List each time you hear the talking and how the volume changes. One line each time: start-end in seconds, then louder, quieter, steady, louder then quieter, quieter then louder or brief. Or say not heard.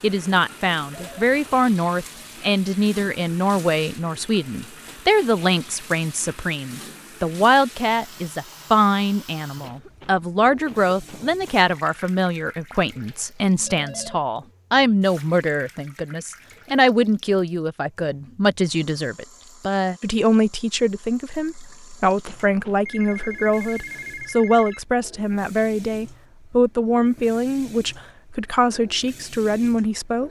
0.0-30.2 steady.